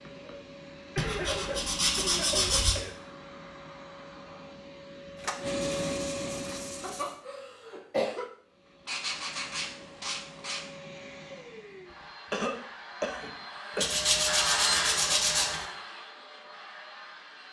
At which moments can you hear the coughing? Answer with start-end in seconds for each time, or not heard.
0.9-3.0, 6.8-8.3, 12.0-14.1.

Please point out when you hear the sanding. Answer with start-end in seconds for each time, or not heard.
0.9-2.8, 5.2-7.2, 8.8-10.7, 13.8-15.7.